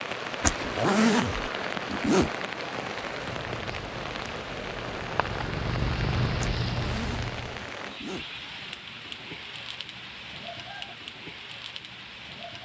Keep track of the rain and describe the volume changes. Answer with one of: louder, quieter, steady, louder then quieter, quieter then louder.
quieter.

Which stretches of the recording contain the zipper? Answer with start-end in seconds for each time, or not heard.
0.4-2.3, 6.7-8.2.